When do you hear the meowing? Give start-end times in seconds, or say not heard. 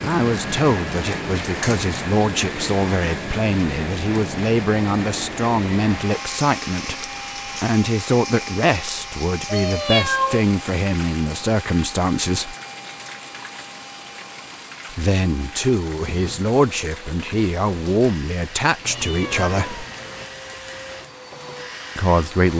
1.4-1.9, 9.4-10.4, 18.8-20.2.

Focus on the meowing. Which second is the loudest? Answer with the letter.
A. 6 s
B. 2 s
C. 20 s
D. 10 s
D.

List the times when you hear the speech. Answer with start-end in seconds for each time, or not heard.
0.0-12.6, 14.9-19.9, 21.9-22.5.